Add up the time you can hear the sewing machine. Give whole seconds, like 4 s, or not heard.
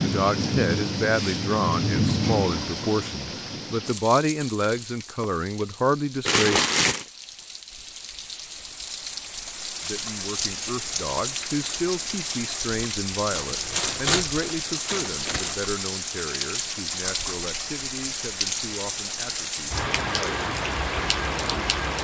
not heard.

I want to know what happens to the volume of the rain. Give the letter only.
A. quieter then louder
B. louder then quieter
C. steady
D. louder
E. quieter
A.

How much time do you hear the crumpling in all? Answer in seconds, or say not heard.
3 s.